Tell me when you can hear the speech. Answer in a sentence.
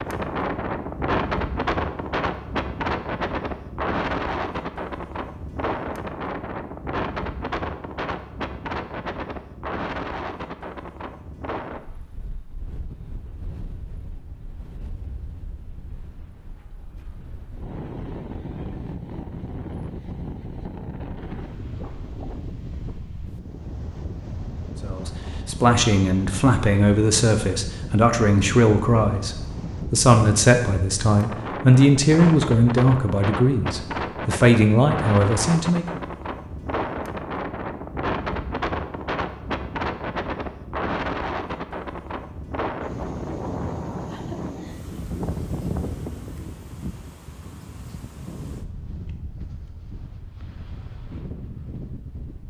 The speech can be heard from 24.9 to 36.0 s.